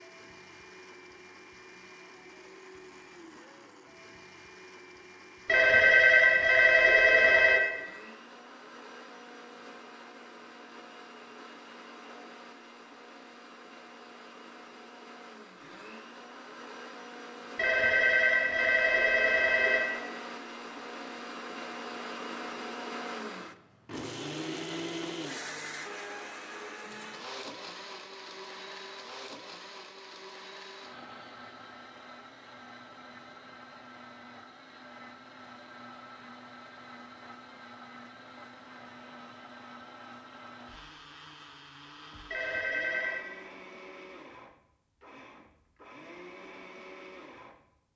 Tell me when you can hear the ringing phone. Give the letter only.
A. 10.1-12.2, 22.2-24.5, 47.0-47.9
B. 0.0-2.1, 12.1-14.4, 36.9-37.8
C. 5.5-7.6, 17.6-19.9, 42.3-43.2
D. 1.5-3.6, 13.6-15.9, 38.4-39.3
C.